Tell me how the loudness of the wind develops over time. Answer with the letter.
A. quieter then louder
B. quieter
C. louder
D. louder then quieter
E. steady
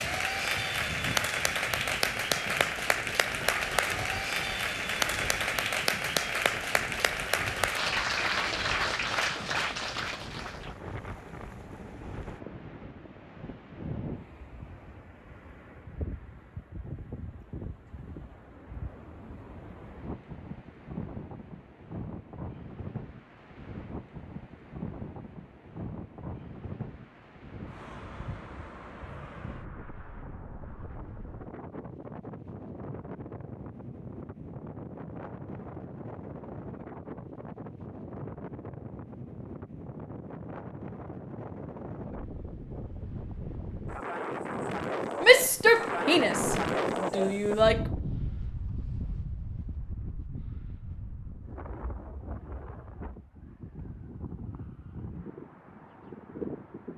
C.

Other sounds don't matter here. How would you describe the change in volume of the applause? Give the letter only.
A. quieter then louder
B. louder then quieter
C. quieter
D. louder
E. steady
E.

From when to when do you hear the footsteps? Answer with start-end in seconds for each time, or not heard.
not heard.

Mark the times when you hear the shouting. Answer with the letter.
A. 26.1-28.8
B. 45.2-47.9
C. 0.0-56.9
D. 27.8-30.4
B.